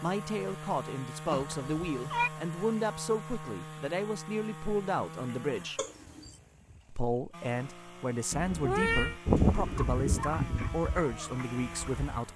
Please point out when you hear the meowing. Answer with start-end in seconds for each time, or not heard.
1.3-2.3, 5.8-6.3, 8.3-9.2.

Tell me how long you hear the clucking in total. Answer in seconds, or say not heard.
3 s.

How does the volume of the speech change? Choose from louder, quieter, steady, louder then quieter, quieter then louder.
steady.